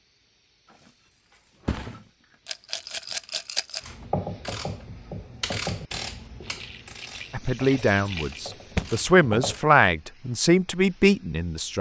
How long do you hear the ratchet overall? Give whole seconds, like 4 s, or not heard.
6 s.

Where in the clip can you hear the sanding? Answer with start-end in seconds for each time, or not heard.
not heard.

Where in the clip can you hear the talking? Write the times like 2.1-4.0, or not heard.
7.3-11.7.